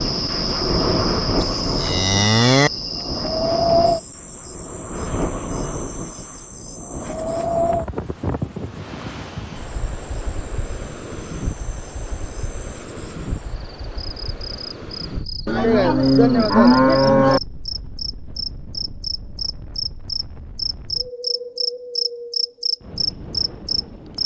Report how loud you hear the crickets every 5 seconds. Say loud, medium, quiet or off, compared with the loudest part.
medium, quiet, quiet, medium, loud.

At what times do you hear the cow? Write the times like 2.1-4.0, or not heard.
1.4-2.7, 15.4-17.4.